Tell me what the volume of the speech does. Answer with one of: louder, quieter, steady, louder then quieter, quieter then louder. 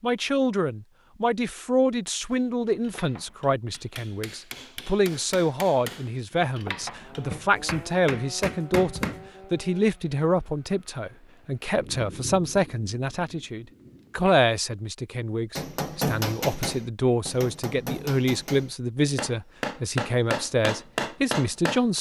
steady.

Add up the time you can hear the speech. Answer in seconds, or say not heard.
22 s.